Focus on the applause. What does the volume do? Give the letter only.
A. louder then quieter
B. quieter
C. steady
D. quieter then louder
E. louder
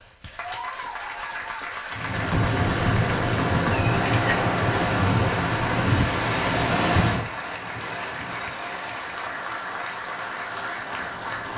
C.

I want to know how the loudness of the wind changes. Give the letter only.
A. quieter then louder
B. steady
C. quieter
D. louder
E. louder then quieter
C.